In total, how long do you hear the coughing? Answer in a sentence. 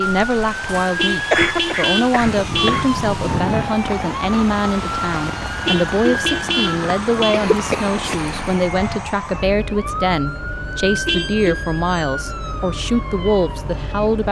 You can hear the coughing for 4 seconds altogether.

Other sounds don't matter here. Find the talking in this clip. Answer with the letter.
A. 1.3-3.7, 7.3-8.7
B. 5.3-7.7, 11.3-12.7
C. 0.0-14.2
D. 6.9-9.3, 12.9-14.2
C.